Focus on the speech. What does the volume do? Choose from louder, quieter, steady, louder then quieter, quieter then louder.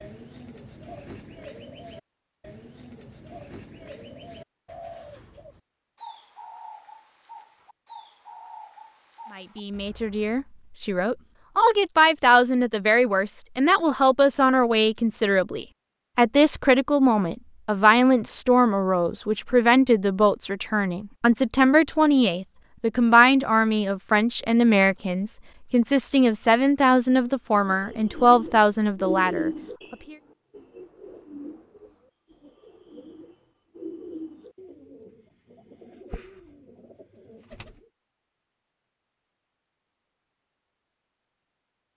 steady.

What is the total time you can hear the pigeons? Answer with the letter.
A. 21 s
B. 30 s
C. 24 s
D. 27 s
A.